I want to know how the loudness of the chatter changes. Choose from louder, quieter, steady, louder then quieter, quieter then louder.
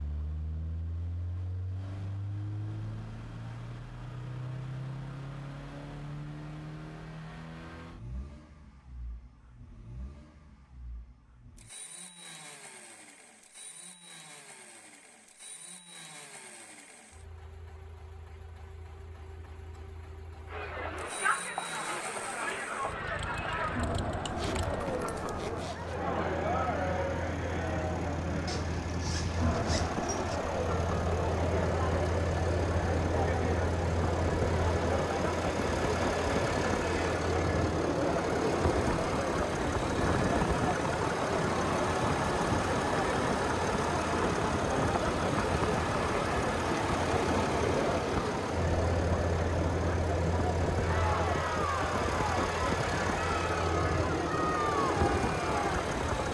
steady.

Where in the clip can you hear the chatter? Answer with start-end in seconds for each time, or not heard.
20.4-56.0.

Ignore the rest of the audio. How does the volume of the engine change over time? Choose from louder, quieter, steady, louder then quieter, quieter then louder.
quieter then louder.